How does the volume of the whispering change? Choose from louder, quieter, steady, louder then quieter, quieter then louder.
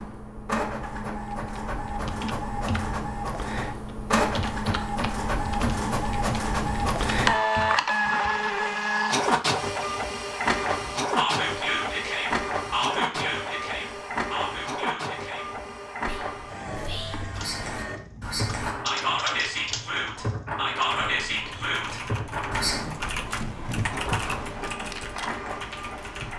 quieter then louder.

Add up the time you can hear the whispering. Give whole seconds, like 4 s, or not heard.
12 s.